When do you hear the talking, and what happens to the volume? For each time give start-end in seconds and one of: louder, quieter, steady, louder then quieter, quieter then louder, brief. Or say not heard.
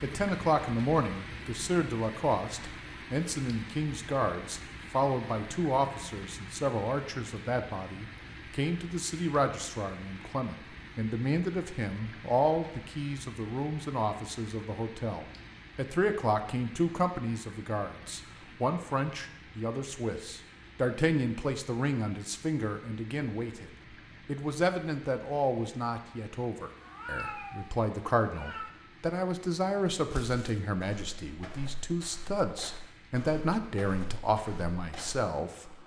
0.0-35.8 steady.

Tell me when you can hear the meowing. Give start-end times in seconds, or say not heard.
26.8-28.7.